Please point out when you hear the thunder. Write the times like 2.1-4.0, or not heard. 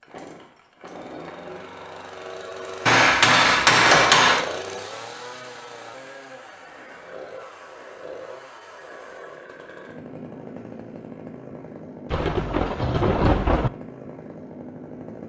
12.1-13.7.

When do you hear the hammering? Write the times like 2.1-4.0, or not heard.
2.9-4.5.